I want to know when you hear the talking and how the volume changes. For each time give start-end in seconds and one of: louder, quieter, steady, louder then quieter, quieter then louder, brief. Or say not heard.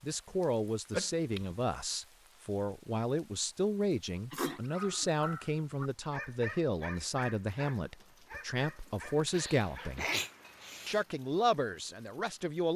0.0-10.1 steady
10.8-12.7 brief.